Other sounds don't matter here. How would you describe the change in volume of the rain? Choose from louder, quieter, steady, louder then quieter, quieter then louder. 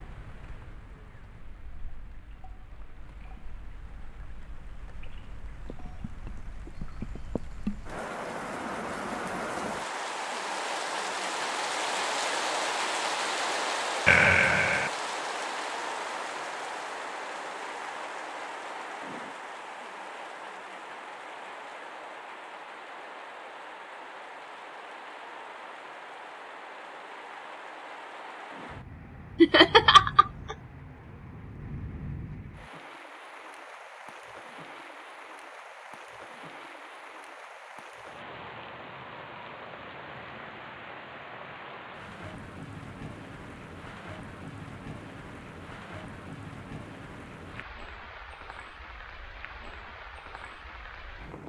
louder then quieter.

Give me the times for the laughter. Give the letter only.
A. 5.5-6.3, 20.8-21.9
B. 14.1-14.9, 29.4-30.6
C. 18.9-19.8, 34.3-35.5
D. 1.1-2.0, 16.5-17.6
B.